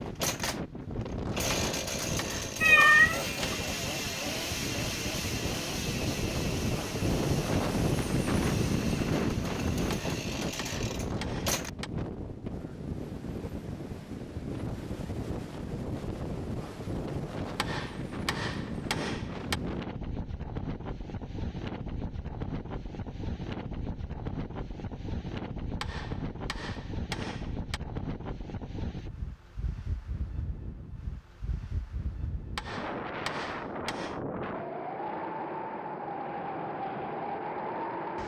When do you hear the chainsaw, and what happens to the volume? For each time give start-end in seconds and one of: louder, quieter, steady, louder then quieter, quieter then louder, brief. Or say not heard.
0.0-11.7 quieter.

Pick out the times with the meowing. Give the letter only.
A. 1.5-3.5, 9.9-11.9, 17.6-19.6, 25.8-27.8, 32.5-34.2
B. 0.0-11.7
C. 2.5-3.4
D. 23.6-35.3
C.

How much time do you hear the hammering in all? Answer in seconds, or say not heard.
10 s.